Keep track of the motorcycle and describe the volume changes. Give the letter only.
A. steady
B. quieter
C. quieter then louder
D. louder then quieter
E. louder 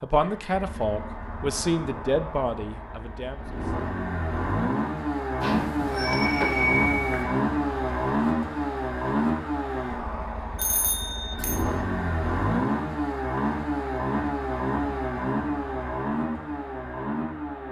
E.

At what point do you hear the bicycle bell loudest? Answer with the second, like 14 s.
7 s.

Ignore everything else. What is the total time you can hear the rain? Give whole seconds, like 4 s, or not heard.
not heard.